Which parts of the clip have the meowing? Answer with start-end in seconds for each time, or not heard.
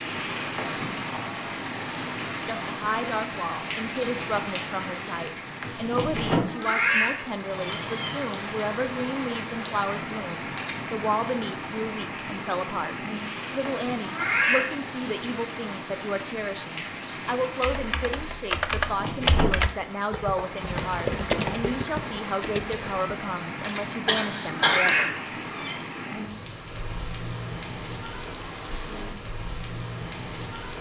6.5-8.0, 14.0-14.8, 24.4-25.8.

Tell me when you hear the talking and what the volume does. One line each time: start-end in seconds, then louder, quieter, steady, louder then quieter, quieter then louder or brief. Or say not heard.
2.5-25.1 steady.